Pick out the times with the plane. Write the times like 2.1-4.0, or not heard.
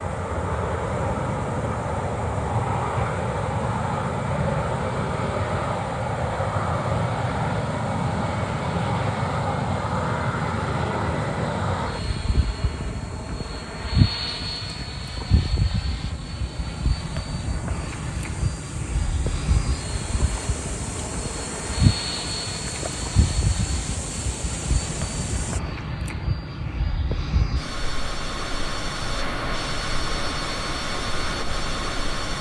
0.0-32.3.